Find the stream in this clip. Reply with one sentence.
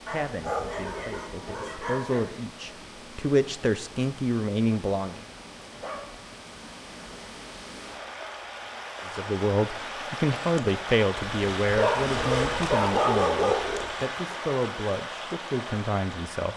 The stream can be heard from 0.0 to 16.5 s.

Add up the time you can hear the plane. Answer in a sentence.
The plane can't be heard in this clip.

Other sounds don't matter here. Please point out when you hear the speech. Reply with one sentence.
You can hear the speech from 0.1 to 5.2 s and from 9.2 to 16.5 s.